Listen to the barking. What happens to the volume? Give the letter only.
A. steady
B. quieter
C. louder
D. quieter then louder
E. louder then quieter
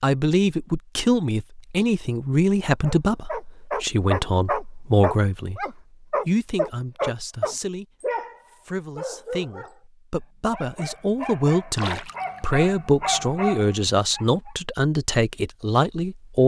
D.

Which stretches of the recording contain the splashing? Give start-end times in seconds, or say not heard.
11.7-12.5.